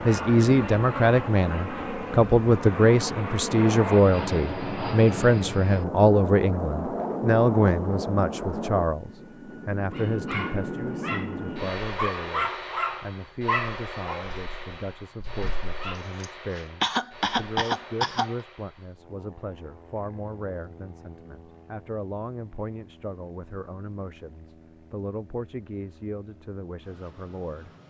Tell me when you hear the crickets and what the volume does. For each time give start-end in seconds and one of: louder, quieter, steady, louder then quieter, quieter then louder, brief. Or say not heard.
not heard.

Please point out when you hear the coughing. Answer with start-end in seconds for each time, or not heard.
16.2-18.4.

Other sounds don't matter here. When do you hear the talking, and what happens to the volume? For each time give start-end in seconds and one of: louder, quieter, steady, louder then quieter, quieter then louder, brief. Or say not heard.
0.1-27.7 quieter.